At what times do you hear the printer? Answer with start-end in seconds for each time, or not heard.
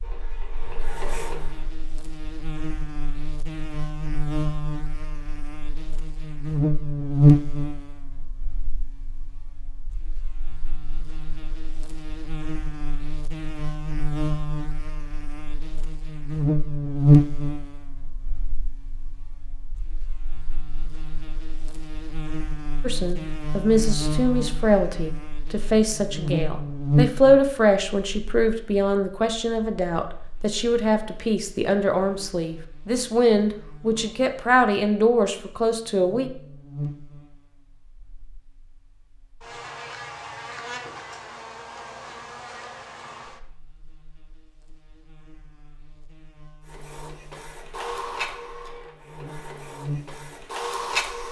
0.0-1.7, 46.6-51.2.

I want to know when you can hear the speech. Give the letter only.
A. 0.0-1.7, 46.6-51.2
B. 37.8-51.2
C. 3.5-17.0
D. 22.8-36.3
D.